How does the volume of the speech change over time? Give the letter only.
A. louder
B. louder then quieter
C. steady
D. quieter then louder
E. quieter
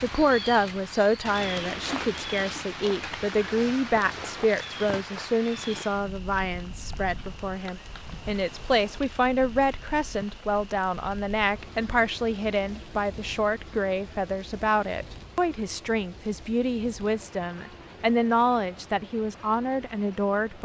C.